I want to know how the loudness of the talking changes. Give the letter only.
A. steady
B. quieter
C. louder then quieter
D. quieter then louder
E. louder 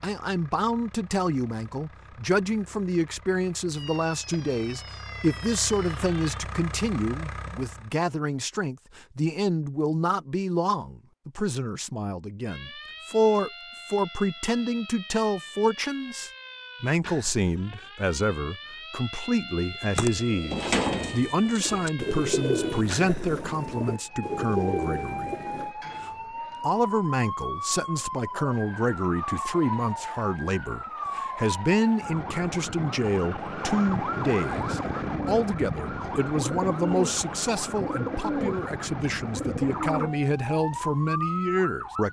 A.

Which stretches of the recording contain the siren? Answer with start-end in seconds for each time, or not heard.
3.7-6.4, 12.4-42.0.